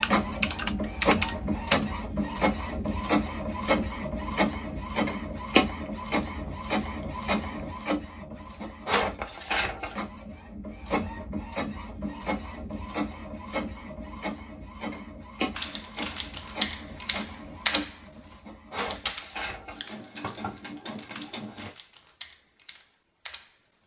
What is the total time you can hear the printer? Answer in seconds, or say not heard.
22 s.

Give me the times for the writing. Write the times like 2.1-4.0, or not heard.
not heard.